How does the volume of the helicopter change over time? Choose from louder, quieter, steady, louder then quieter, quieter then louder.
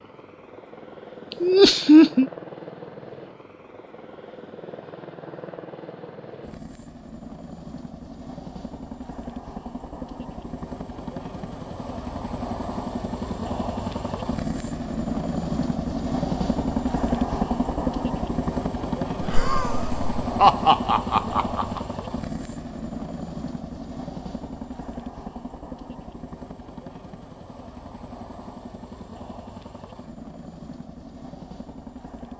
louder then quieter.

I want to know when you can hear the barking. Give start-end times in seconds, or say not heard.
not heard.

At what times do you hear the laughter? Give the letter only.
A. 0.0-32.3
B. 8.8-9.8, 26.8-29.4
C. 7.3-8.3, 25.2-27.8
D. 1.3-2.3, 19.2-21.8
D.